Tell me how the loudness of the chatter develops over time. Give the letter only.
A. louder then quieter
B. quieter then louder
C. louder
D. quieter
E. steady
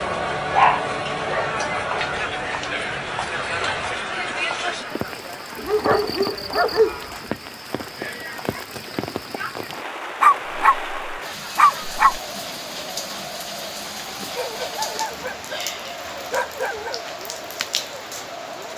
D.